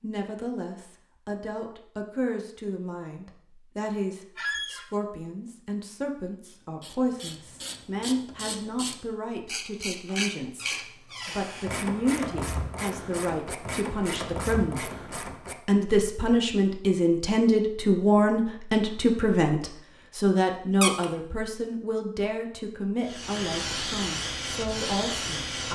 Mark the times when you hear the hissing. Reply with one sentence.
You can hear the hissing from 23.0 to 25.7 s.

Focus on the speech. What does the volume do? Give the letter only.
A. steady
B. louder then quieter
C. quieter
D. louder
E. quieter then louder
B.